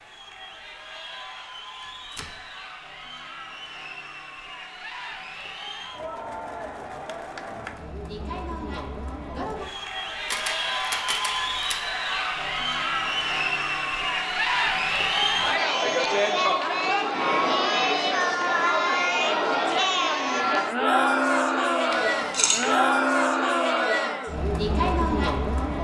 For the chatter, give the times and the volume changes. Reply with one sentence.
The chatter can be heard from 0.0 to 25.7 s, getting louder.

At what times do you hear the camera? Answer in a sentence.
You can hear the camera from 1.8 to 2.4 s, from 10.2 to 11.8 s and from 21.9 to 22.8 s.